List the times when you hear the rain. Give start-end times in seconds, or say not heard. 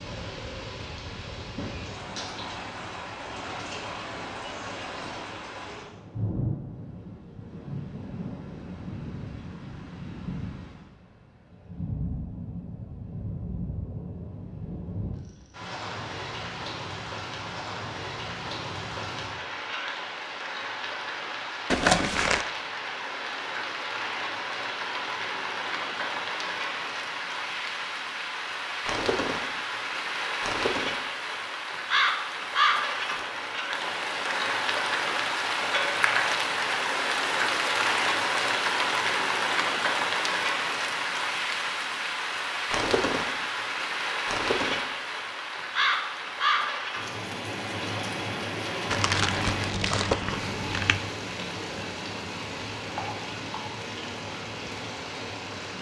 0.0-55.7.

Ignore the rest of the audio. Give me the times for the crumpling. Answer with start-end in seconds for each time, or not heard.
21.7-22.4, 48.9-51.0.